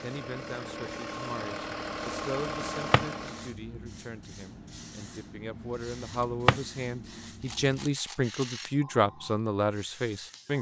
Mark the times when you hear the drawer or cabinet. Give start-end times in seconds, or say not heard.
2.6-3.0, 6.2-6.6.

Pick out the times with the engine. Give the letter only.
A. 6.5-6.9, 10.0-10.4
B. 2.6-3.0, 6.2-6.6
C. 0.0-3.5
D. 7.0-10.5
C.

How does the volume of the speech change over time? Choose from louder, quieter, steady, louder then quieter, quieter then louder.
louder.